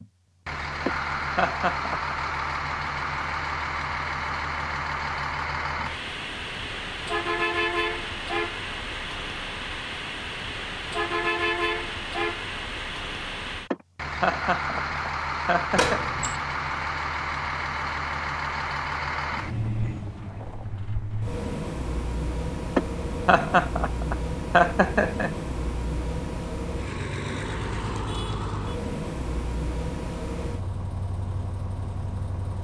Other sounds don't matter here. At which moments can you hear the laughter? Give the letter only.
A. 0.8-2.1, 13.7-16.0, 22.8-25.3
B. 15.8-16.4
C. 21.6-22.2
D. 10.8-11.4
A.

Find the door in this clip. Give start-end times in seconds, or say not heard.
15.8-16.4.